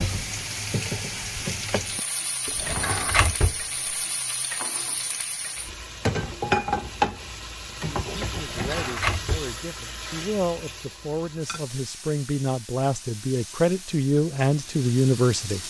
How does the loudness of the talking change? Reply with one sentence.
The loudness of the talking goes up.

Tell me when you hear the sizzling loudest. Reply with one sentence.
The loudest moment of the sizzling is at 7 seconds.